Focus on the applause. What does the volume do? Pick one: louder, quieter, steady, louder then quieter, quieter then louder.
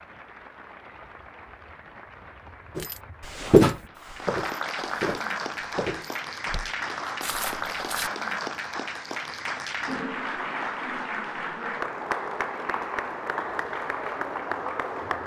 louder.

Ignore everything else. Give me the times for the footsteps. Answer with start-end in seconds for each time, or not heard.
2.8-8.1.